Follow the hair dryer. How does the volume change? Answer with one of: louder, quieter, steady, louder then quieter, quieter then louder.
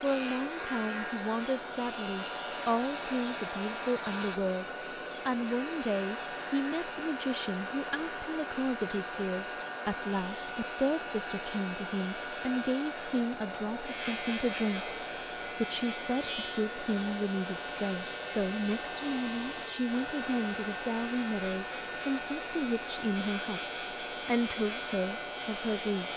steady.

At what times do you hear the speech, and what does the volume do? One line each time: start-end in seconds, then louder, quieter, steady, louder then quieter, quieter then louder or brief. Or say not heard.
0.0-26.1 steady.